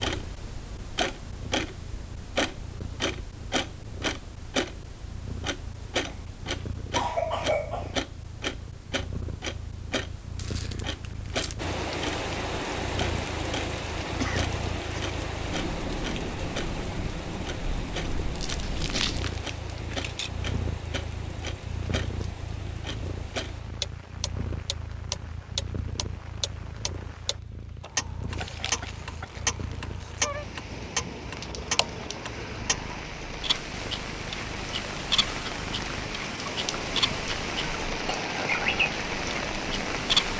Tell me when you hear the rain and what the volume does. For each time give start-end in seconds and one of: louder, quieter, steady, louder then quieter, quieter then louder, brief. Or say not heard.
11.6-40.3 quieter then louder.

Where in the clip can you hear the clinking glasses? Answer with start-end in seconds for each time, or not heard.
not heard.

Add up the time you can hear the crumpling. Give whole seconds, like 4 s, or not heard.
4 s.